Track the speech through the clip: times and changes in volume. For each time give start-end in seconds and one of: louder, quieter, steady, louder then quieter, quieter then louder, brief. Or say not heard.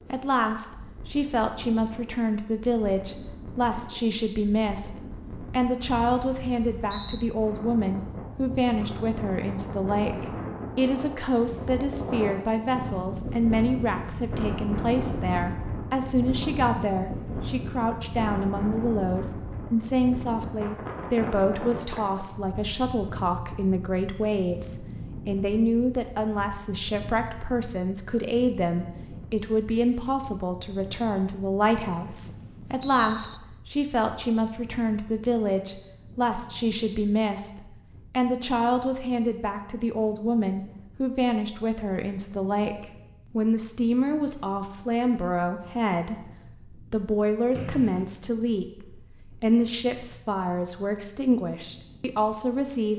0.0-52.9 steady.